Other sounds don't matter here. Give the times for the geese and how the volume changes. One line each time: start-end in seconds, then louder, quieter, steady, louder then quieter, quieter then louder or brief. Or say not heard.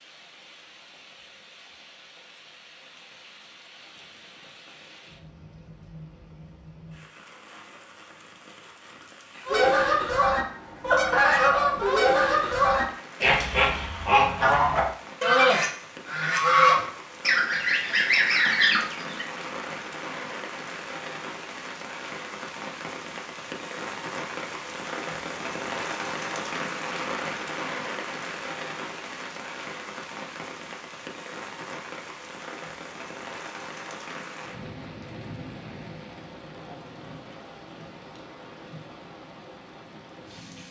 9.4-19.2 steady.